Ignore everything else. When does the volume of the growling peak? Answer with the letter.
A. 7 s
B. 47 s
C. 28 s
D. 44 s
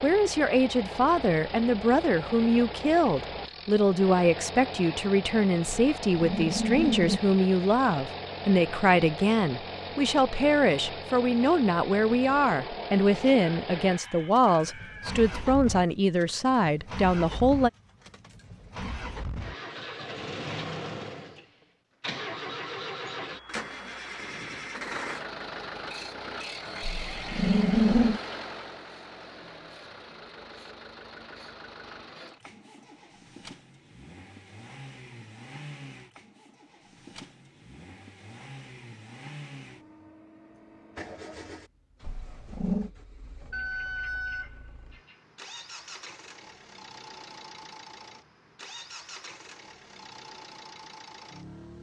C.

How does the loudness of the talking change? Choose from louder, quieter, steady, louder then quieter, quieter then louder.
steady.